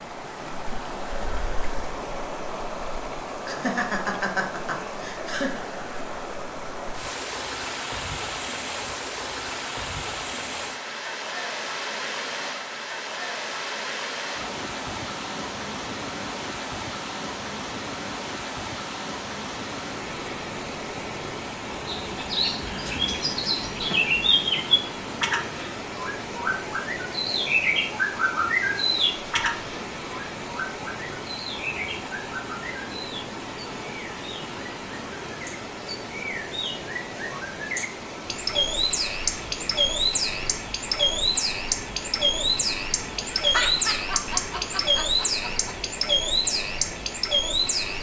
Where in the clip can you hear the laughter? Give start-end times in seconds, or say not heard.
3.5-5.6, 43.4-45.8.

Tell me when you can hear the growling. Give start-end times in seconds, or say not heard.
not heard.